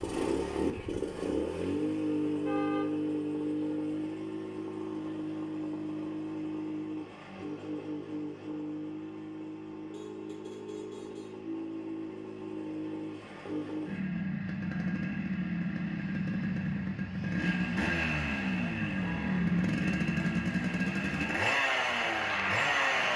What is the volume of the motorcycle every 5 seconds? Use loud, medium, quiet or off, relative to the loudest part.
loud, medium, medium, loud, loud.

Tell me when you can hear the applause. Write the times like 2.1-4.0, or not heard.
21.6-23.1.